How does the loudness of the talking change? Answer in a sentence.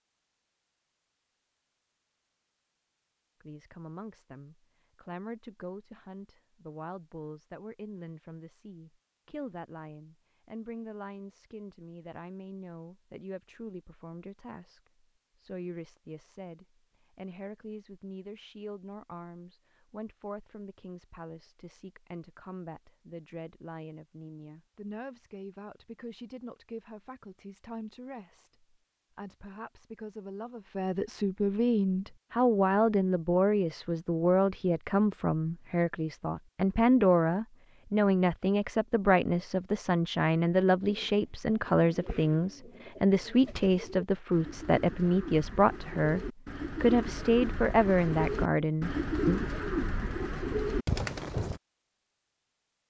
The volume of the talking goes up.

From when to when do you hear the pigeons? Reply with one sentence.
You can hear the pigeons from 40.8 to 51.6 s.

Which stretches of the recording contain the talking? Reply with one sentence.
The talking can be heard from 3.4 to 49.4 s.